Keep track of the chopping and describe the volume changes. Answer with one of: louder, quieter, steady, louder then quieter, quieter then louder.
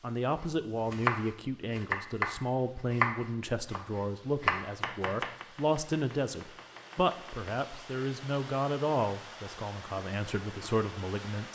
quieter.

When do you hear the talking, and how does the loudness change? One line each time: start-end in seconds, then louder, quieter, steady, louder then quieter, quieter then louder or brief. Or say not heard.
0.0-11.5 steady.